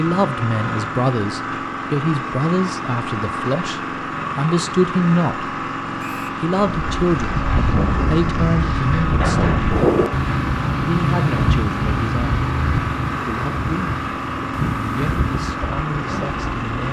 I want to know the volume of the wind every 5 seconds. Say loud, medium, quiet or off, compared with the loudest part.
off, loud, loud, medium.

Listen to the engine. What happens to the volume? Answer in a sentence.
The loudness of the engine stays about the same.